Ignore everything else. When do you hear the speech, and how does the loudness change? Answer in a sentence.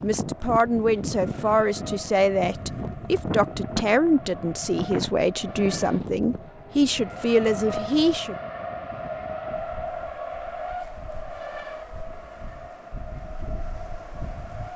The speech can be heard from 0.0 to 8.3 s, at a steady volume.